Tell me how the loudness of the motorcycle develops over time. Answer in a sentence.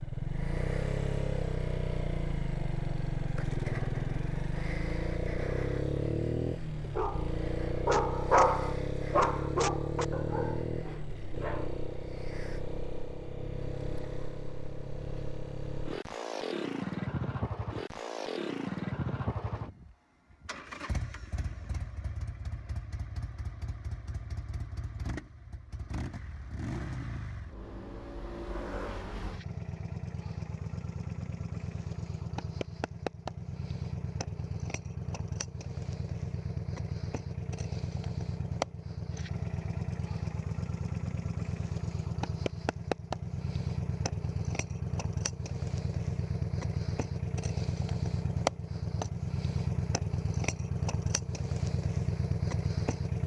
The loudness of the motorcycle goes down, then up.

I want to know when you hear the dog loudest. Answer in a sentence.
The volume of the dog peaks at 8 seconds.